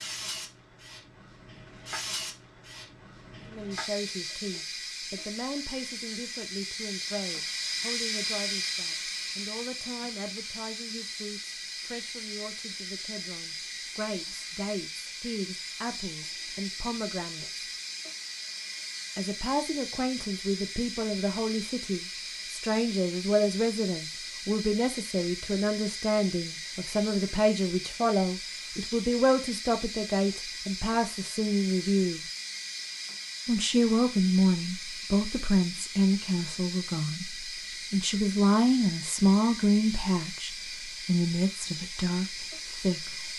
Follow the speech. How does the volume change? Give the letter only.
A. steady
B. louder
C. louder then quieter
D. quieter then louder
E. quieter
B.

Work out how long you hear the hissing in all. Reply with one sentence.
You can hear the hissing for 43 seconds altogether.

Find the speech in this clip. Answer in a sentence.
The speech can be heard from 3.5 to 17.6 s, from 19.1 to 32.2 s and from 33.5 to 43.2 s.